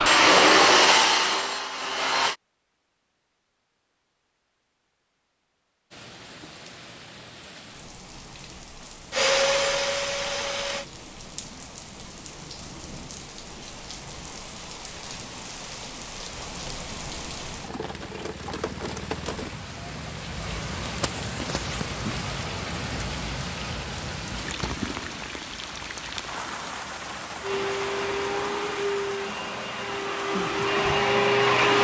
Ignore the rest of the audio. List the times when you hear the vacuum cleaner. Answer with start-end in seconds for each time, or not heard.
0.0-2.4, 9.1-10.8, 27.4-31.7.